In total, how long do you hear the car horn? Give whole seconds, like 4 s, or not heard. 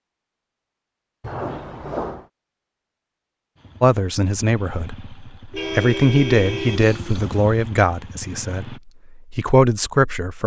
3 s.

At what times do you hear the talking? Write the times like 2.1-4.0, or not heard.
3.8-10.4.